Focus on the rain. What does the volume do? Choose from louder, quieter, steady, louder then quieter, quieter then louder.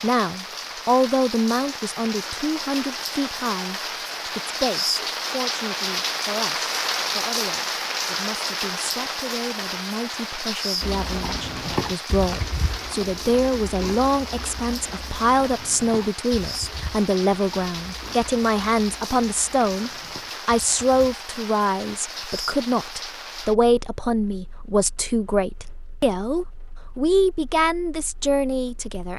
quieter.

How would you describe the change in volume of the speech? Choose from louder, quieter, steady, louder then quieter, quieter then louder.
quieter then louder.